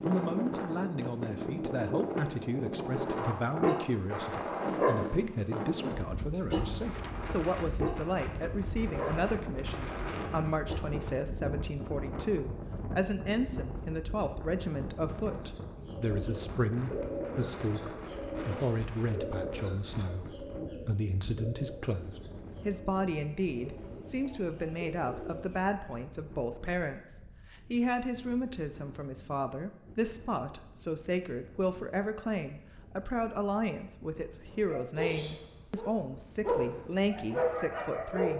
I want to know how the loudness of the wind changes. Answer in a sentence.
The volume of the wind goes down.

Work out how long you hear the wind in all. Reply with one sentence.
You can hear the wind for 38 seconds altogether.